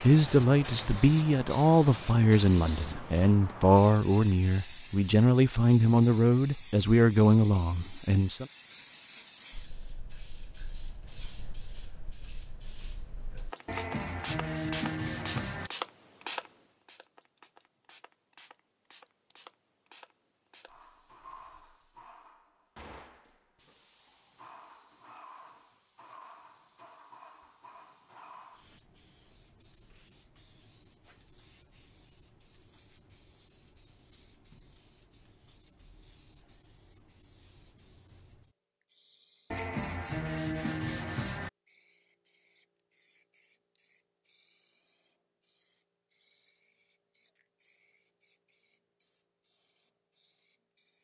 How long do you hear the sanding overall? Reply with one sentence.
You can hear the sanding for 4 seconds altogether.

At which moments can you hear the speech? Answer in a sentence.
The speech can be heard from 0.0 to 8.4 s.